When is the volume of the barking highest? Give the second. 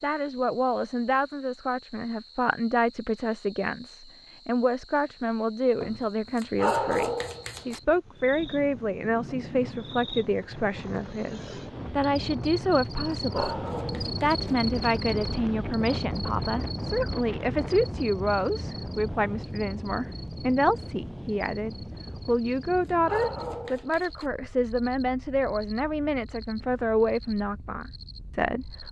7 s.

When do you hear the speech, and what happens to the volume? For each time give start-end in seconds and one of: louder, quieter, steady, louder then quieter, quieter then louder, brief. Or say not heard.
0.0-28.8 steady.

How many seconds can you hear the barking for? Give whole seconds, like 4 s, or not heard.
6 s.